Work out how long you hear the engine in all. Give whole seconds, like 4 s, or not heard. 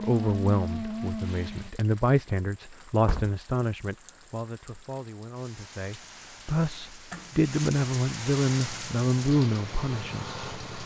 4 s.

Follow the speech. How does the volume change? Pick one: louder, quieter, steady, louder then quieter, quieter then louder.
quieter then louder.